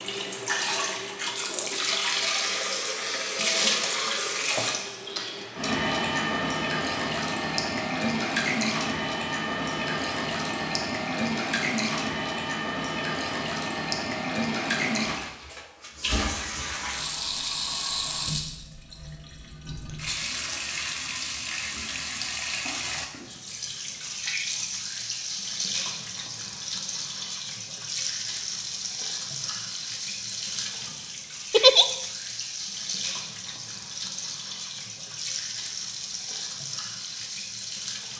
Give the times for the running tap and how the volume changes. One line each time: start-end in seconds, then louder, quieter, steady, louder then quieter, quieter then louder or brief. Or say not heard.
0.0-38.1 quieter.